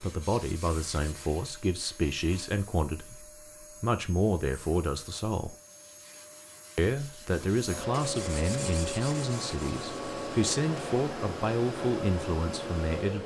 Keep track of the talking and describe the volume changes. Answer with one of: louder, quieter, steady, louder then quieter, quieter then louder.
steady.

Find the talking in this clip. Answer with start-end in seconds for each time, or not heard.
0.0-5.5, 6.8-13.2.